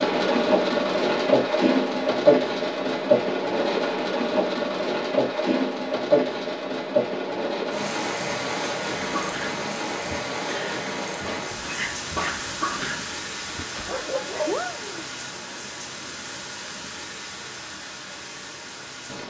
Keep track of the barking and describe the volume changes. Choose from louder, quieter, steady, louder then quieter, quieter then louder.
louder.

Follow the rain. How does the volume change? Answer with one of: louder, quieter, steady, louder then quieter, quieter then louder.
quieter.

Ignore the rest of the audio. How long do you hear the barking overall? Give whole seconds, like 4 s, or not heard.
6 s.